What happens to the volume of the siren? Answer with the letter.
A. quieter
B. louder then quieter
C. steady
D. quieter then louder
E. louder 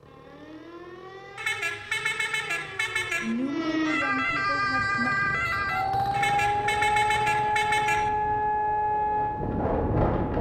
E.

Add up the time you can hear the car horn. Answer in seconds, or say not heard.
4 s.